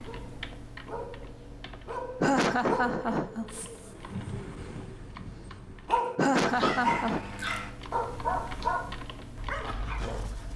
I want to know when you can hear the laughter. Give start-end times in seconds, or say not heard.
2.2-3.5, 6.2-7.2.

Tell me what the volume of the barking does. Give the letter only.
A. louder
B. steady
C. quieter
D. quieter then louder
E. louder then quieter
A.